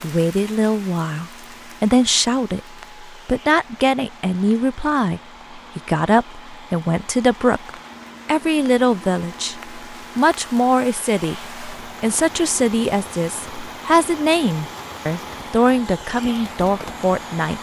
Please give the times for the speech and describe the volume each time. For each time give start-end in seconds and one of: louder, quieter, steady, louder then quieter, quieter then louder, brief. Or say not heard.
0.0-17.5 steady.